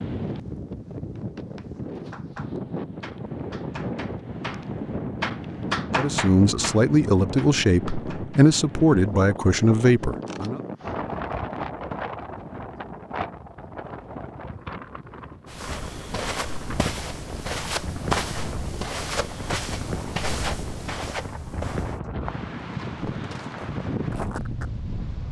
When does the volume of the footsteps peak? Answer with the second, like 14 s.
18 s.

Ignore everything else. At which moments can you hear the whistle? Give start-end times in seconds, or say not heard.
not heard.